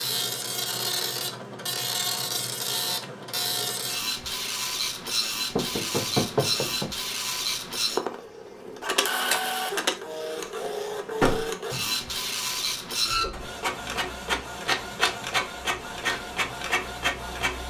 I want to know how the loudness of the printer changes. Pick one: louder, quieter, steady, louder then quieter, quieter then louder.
steady.